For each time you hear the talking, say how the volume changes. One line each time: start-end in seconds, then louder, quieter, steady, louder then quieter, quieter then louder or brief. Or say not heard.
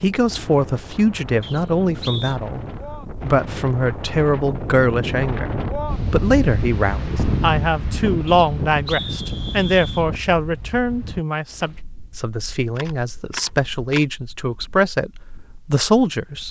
0.0-16.4 steady.